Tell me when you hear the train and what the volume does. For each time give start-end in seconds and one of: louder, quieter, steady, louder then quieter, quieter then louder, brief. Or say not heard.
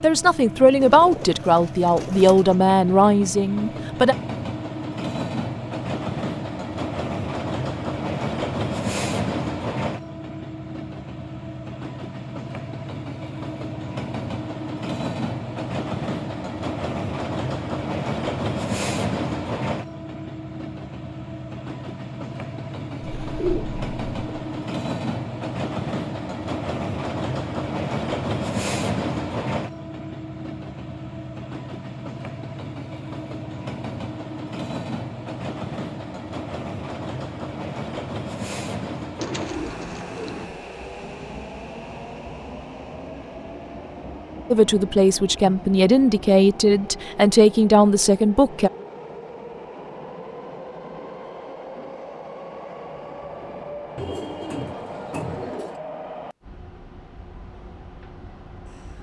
0.0-58.9 quieter.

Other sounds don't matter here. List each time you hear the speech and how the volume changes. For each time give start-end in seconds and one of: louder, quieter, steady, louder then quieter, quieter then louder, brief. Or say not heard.
0.0-4.2 quieter
44.5-48.7 steady.